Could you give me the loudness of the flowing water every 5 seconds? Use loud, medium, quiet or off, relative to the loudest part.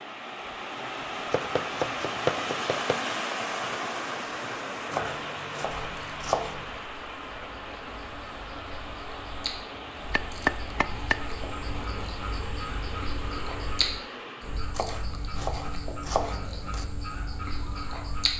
loud, medium, medium, off.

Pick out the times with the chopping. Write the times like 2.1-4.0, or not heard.
1.3-3.0, 4.9-6.7, 9.8-11.2, 14.7-16.9.